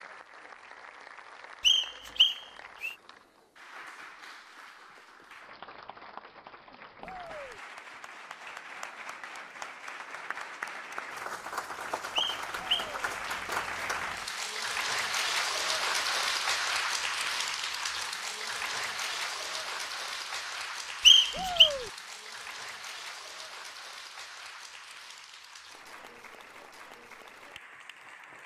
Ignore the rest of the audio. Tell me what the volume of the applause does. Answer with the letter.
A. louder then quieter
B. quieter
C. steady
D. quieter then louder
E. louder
A.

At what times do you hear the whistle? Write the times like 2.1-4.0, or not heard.
1.6-3.0, 12.2-12.9, 21.1-21.7.